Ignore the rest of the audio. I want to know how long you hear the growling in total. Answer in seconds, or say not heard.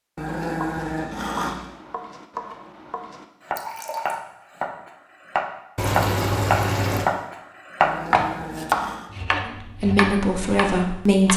3 s.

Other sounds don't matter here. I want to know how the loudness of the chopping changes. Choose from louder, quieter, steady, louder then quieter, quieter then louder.
louder then quieter.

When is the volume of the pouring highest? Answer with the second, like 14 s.
6 s.